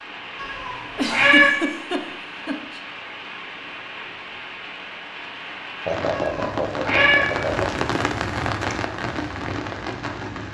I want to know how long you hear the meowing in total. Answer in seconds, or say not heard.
2 s.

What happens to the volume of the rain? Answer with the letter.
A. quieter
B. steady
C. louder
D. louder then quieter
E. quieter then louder
C.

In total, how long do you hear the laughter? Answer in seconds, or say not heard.
4 s.